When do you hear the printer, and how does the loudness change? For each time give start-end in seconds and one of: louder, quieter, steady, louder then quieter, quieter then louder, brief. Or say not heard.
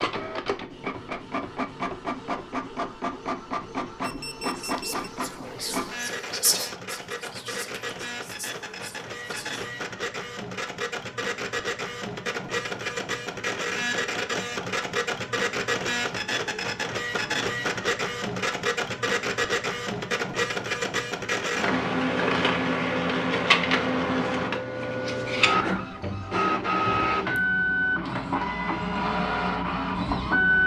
0.0-30.6 louder.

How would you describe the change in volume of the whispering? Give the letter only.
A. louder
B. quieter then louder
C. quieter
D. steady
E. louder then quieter
E.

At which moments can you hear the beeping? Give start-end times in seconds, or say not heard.
4.0-5.1.